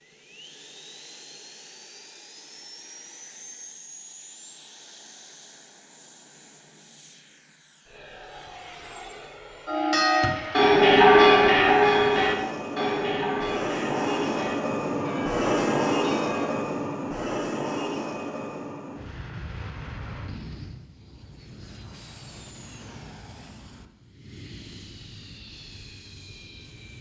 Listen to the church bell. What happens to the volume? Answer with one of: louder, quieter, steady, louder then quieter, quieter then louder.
quieter.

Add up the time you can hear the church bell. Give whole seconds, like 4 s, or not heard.
7 s.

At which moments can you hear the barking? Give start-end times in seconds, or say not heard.
not heard.